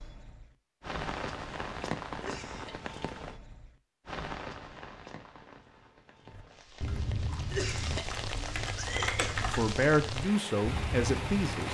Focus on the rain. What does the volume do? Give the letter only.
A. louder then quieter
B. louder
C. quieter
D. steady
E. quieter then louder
E.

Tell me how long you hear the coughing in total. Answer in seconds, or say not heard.
3 s.